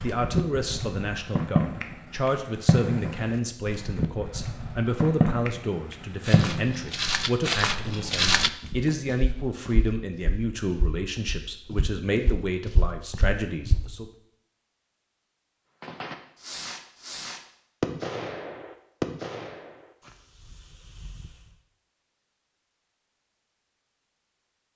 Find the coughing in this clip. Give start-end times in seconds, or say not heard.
not heard.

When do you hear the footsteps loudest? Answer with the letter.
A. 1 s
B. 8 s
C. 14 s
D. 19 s
B.